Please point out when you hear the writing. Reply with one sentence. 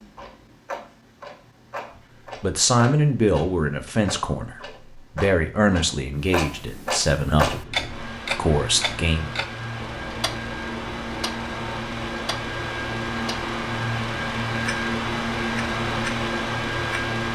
You can't hear the writing here.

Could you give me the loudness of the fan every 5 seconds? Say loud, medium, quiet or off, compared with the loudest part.
off, medium, loud, loud.